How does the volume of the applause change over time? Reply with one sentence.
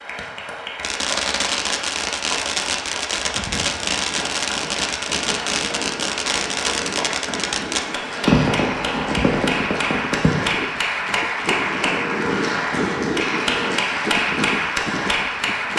The volume of the applause goes up.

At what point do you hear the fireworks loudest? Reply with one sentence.
The loudest moment of the fireworks is at 8 seconds.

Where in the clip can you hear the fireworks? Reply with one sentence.
You can hear the fireworks from 0.8 to 10.3 s.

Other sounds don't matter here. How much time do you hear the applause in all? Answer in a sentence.
You can hear the applause for 16 seconds altogether.